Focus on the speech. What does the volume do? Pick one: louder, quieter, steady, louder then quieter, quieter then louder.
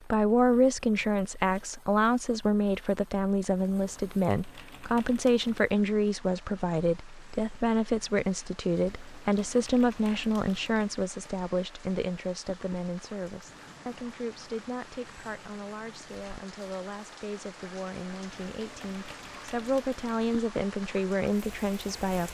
quieter then louder.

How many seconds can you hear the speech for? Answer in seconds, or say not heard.
22 s.